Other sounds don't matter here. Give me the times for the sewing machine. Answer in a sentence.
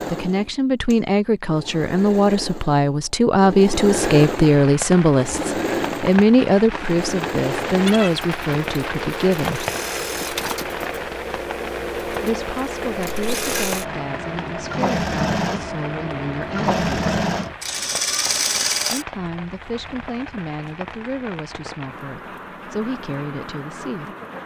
The sewing machine can be heard from 0.0 to 19.1 s.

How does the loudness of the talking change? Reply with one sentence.
The volume of the talking goes down.